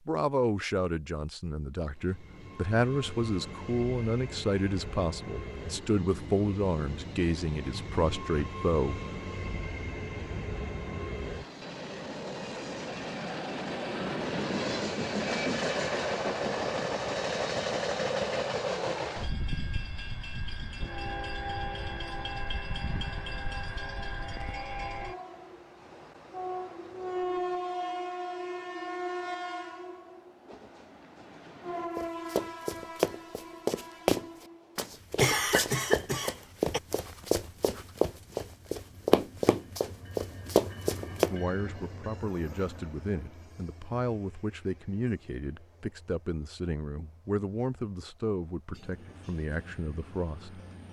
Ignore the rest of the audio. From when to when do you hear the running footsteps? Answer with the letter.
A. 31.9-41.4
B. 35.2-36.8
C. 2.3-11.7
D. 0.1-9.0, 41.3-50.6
A.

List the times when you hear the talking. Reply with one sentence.
You can hear the talking from 0.1 to 9.0 s and from 41.3 to 50.6 s.